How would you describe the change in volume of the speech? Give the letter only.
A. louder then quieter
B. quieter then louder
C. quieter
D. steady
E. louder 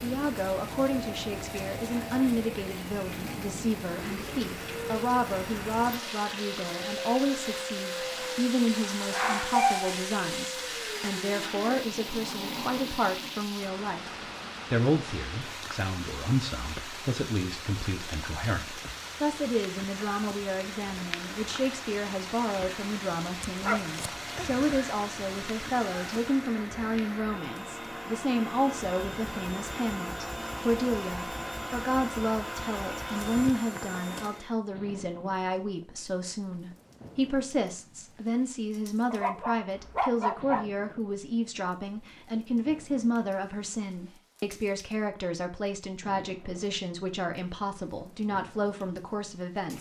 D.